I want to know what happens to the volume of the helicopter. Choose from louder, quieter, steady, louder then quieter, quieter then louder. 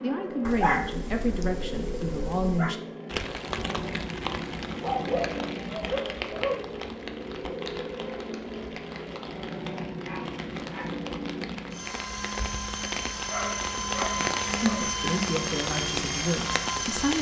louder.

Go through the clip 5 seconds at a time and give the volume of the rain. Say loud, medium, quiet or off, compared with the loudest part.
loud, medium, loud, loud.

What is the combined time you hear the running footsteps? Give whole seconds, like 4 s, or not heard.
not heard.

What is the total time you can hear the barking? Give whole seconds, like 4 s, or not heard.
7 s.